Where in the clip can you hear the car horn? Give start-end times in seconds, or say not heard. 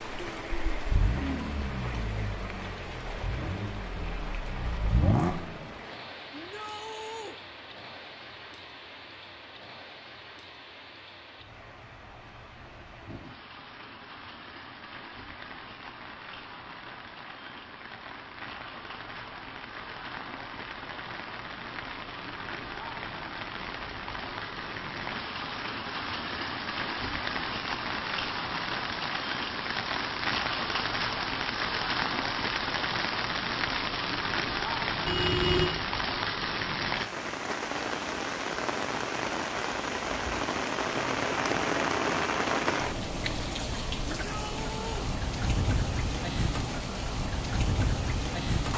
35.0-35.7.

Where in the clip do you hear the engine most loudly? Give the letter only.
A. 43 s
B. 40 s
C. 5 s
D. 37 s
C.